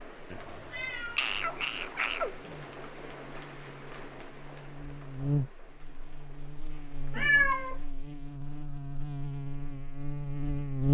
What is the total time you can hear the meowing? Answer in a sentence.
The meowing can be heard for 3 seconds in total.